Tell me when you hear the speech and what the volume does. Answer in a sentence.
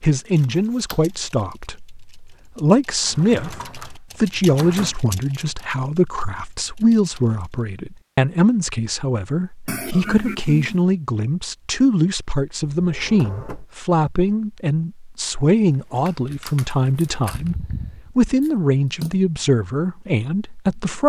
The speech can be heard from 0.0 to 21.0 s, at a steady volume.